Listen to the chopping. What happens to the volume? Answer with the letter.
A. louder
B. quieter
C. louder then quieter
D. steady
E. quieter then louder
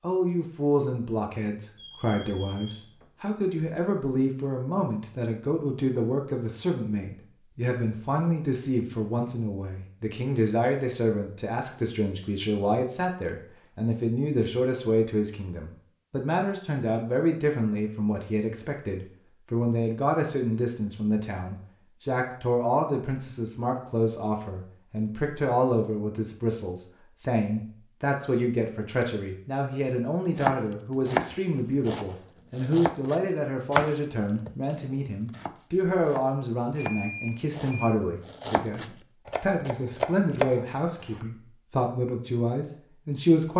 E.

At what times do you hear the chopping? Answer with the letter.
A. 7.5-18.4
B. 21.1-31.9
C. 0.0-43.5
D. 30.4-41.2
D.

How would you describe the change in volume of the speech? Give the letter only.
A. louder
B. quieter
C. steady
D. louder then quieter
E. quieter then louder
C.